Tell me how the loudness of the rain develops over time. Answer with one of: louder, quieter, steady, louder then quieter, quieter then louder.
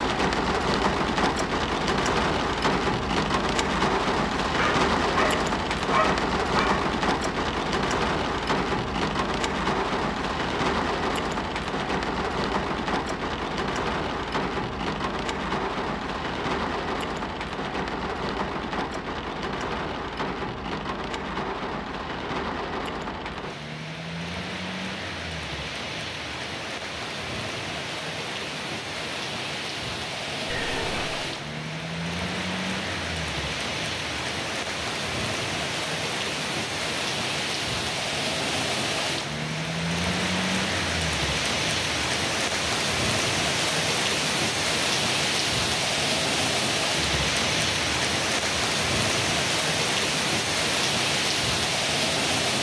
quieter then louder.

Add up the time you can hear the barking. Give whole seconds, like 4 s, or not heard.
2 s.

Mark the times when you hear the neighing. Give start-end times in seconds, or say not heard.
30.4-31.2.